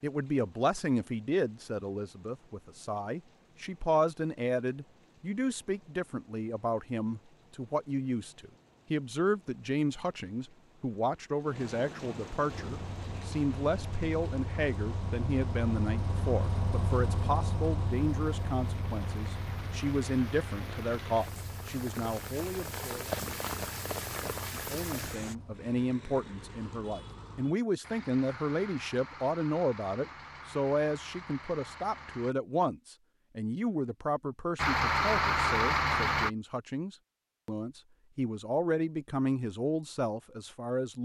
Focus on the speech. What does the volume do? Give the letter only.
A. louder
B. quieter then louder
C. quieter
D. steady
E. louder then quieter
D.